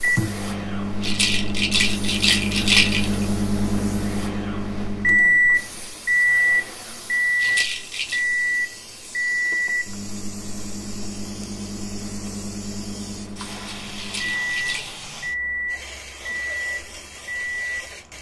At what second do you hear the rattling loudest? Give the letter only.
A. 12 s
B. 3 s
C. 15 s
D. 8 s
B.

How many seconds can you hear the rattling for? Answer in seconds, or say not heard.
4 s.